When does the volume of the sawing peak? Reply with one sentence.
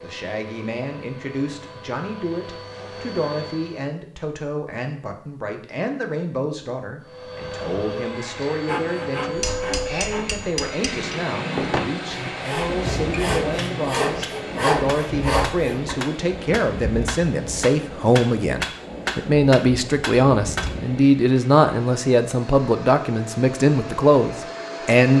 The volume of the sawing peaks at 15 seconds.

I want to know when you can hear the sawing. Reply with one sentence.
You can hear the sawing from 8.7 to 15.9 s.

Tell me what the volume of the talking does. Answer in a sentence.
The loudness of the talking goes up.